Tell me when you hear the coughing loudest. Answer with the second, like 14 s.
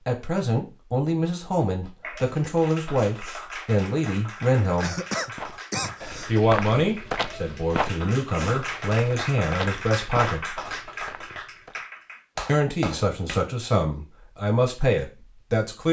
5 s.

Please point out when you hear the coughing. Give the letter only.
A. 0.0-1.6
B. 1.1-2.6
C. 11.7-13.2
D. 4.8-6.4
D.